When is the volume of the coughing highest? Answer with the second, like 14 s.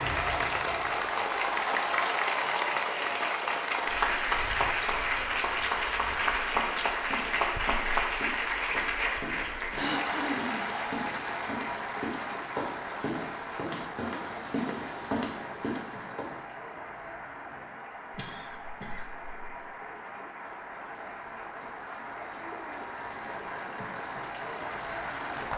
10 s.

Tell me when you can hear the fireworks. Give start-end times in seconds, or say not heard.
not heard.